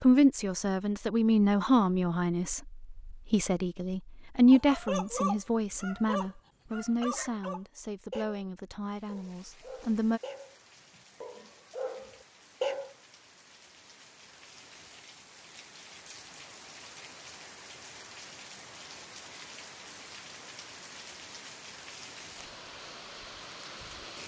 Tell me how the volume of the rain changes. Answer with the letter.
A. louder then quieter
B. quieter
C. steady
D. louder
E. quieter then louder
D.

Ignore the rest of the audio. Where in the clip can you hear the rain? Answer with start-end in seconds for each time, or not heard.
8.9-24.2.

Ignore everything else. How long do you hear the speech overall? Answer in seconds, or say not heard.
10 s.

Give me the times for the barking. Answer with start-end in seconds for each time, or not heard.
4.5-12.9.